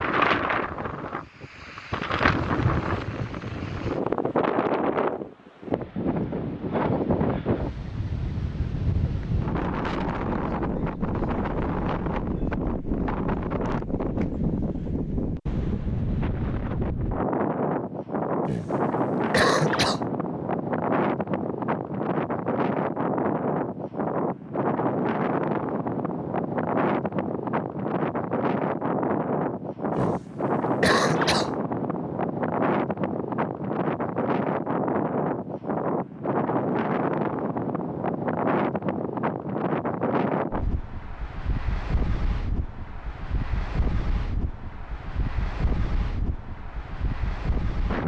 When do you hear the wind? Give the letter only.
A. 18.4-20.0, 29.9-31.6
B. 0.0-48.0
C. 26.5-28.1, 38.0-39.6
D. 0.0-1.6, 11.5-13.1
B.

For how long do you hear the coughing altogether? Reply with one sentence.
You can hear the coughing for 3 seconds altogether.